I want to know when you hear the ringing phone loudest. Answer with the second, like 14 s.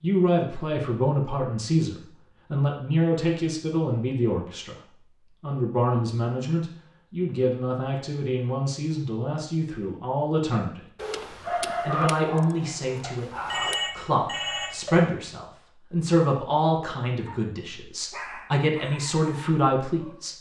14 s.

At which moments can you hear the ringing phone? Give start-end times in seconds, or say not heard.
13.0-14.9.